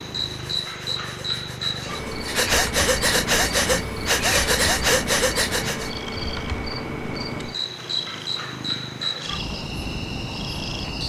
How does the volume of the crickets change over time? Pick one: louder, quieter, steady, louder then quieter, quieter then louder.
steady.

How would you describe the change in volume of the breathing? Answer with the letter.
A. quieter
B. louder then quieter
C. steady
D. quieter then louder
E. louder
E.